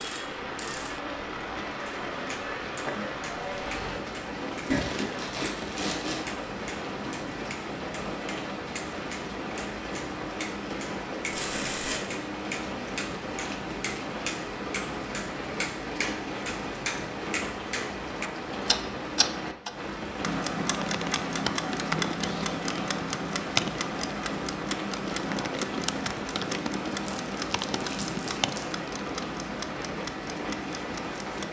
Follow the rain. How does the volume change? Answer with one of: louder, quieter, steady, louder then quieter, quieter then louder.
steady.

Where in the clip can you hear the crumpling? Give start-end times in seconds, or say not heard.
4.7-6.2, 11.3-12.0, 26.9-28.8.